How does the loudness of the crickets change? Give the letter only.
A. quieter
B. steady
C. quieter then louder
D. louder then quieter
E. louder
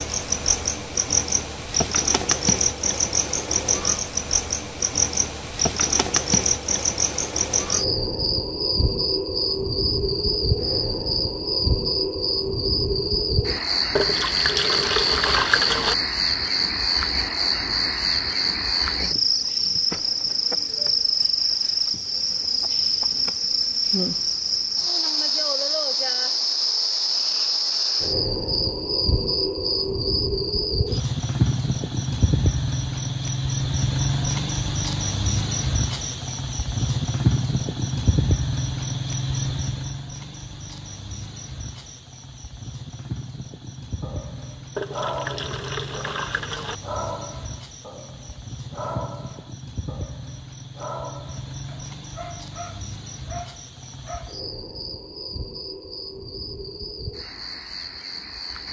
A.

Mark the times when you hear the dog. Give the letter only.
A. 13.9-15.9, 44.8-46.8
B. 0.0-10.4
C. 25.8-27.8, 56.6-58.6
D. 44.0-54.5
D.